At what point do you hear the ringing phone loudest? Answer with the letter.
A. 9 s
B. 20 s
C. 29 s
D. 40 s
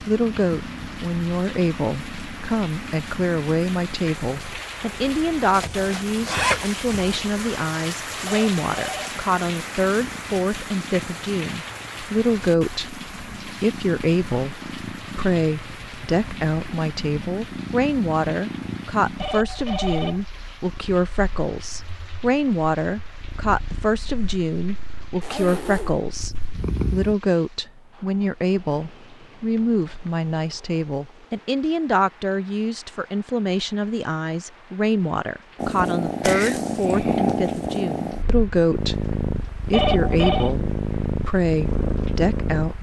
D.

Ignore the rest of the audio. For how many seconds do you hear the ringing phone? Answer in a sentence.
The ringing phone can be heard for 3 seconds in total.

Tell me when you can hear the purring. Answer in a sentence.
The purring can be heard from 0.0 to 27.1 s and from 35.5 to 42.7 s.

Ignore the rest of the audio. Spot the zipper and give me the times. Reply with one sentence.
The zipper can be heard from 5.5 to 7.2 s and from 25.2 to 26.0 s.